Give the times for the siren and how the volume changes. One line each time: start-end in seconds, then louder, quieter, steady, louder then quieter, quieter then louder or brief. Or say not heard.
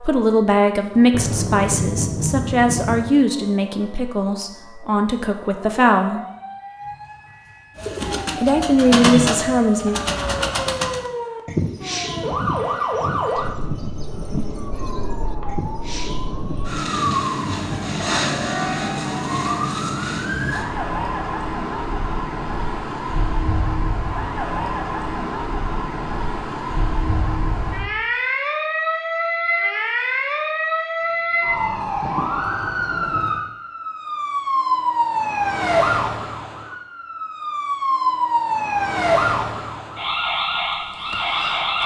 0.0-41.8 louder.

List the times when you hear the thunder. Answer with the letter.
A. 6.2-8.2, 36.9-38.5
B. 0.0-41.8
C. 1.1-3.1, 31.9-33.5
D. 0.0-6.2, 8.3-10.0
C.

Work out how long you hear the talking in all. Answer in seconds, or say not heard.
8 s.